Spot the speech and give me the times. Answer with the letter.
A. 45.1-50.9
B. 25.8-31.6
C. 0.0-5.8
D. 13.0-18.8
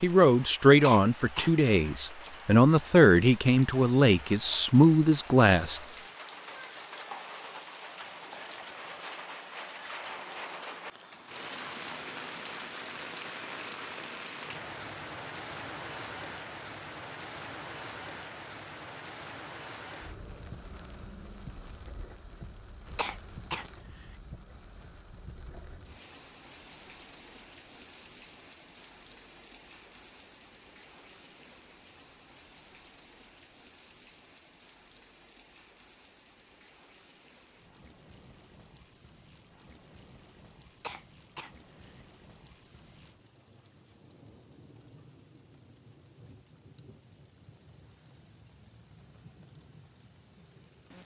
C.